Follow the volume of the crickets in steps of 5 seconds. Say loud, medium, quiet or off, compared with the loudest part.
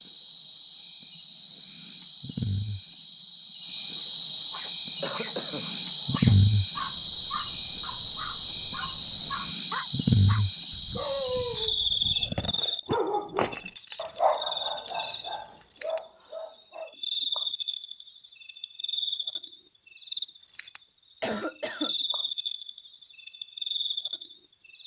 medium, loud, loud, medium, medium.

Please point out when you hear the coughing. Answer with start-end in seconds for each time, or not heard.
5.0-5.7, 21.2-21.9.